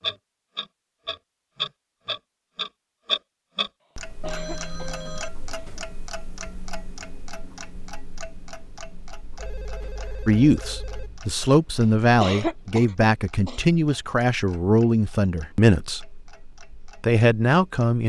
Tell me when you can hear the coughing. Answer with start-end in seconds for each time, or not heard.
4.2-5.8, 12.2-13.7.